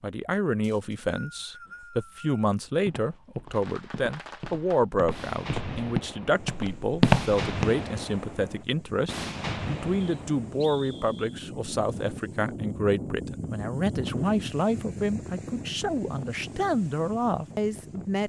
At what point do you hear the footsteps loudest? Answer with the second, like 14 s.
7 s.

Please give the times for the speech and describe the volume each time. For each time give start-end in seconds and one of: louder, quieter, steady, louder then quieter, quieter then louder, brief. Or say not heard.
0.0-18.2 steady.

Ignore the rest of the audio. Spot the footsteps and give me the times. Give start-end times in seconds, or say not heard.
2.6-7.7.